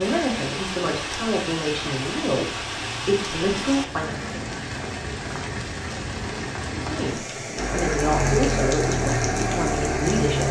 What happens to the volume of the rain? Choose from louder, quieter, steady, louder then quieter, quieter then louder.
steady.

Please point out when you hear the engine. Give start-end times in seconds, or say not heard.
7.5-10.4.